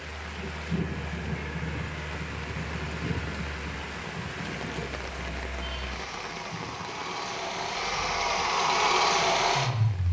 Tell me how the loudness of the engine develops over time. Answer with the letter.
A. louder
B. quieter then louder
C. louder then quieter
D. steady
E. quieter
A.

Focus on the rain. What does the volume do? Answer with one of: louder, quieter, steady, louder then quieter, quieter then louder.
quieter.